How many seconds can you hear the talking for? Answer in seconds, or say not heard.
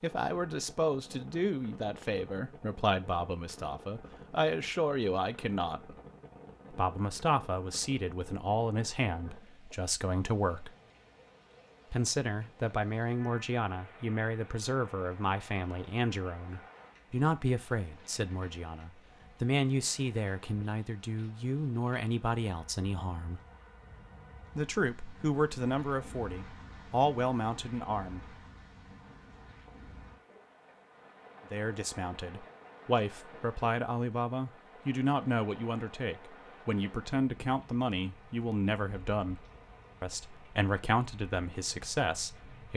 36 s.